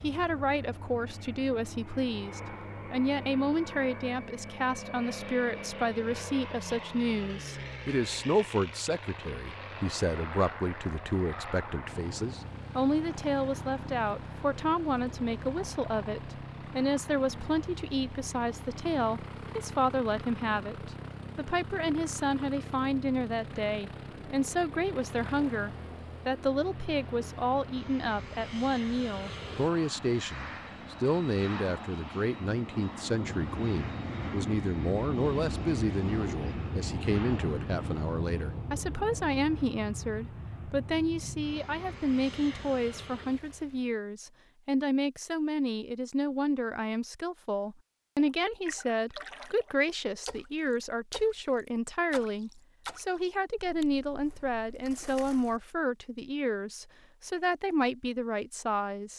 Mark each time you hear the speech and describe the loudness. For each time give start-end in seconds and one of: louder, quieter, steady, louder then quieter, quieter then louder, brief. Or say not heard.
0.0-59.1 steady.